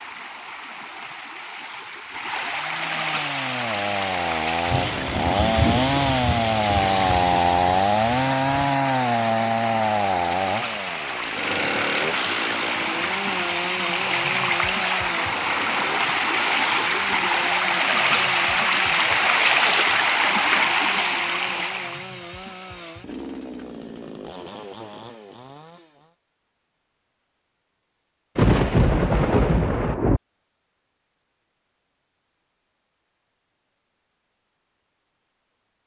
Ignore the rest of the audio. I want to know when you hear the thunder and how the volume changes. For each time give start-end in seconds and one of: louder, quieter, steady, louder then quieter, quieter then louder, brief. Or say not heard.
4.7-8.8 quieter
28.4-30.2 brief.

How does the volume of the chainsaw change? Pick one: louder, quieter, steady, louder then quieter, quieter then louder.
quieter.